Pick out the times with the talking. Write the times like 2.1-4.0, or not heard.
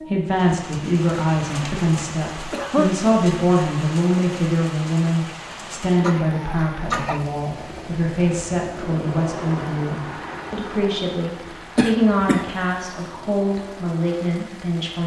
0.1-15.0.